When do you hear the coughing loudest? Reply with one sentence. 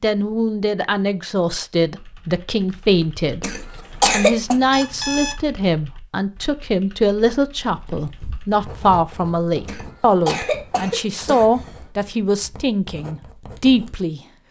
The loudest moment of the coughing is at 4 seconds.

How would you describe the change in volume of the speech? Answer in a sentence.
The loudness of the speech stays about the same.